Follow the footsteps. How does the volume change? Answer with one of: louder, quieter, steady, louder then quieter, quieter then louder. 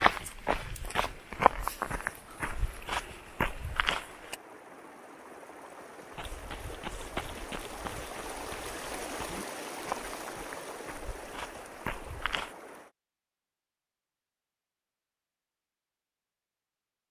quieter.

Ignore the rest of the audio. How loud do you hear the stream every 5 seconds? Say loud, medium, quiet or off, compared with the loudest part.
medium, loud, loud, off.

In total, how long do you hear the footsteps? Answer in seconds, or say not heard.
11 s.